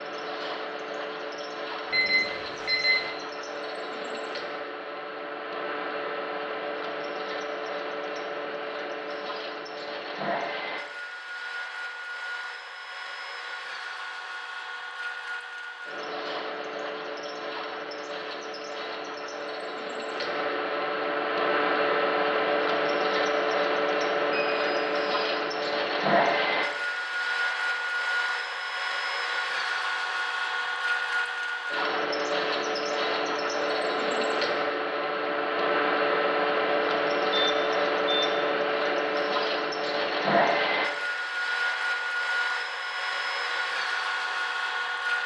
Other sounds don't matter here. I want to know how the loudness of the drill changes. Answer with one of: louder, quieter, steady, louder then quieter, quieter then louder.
louder.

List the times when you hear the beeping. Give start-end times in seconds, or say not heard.
1.9-3.0, 24.3-25.1, 37.3-38.4.